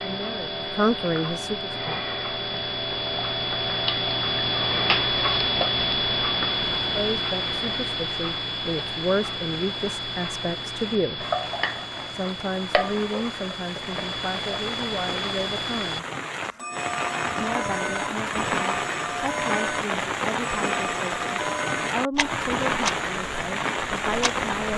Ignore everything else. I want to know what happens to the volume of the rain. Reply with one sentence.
The volume of the rain goes up.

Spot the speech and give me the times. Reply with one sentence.
The speech can be heard from 0.0 to 1.7 s, from 6.8 to 11.2 s, from 12.1 to 16.1 s and from 17.4 to 24.7 s.